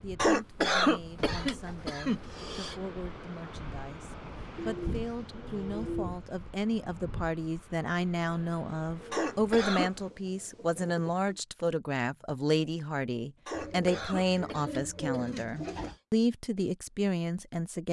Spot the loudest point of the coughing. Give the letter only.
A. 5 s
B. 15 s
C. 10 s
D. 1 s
D.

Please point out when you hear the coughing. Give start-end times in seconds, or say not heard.
0.1-2.8, 9.1-9.9, 13.4-15.9.